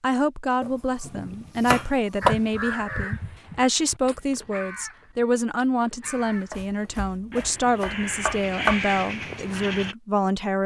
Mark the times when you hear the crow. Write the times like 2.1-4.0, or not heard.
2.2-9.9.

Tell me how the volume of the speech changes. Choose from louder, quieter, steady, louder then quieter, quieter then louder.
steady.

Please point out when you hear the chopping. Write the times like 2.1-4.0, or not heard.
0.6-2.4, 6.0-8.8.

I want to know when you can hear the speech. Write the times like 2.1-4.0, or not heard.
0.0-10.6.